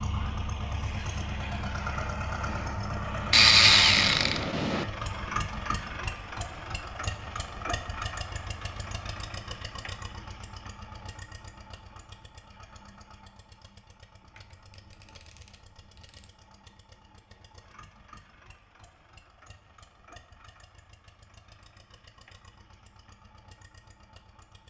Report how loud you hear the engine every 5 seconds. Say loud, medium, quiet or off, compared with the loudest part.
loud, loud, quiet, quiet, quiet.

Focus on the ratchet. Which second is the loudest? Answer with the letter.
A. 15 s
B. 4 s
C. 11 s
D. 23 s
B.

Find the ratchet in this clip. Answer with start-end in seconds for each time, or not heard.
3.3-4.8, 14.3-16.3.